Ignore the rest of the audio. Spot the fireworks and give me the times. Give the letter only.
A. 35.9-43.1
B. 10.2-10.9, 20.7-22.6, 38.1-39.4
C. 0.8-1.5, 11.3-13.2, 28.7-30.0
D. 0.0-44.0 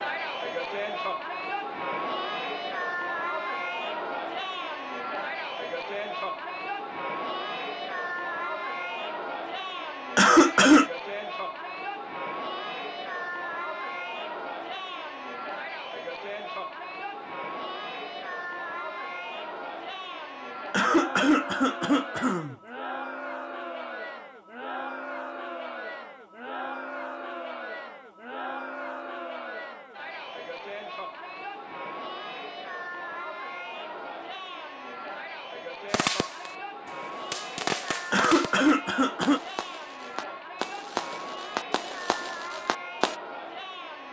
A.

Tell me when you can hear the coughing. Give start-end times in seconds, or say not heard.
10.2-10.9, 20.7-22.6, 38.1-39.4.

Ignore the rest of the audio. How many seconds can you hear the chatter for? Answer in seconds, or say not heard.
44 s.